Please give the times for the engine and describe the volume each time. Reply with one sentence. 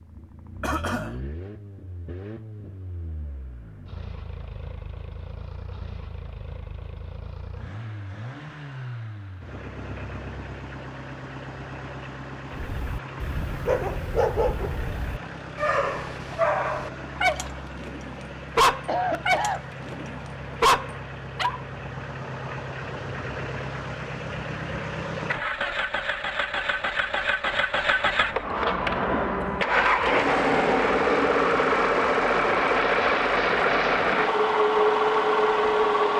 You can hear the engine from 0.0 to 36.1 s, getting louder.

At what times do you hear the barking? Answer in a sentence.
The barking can be heard from 12.5 to 21.6 s.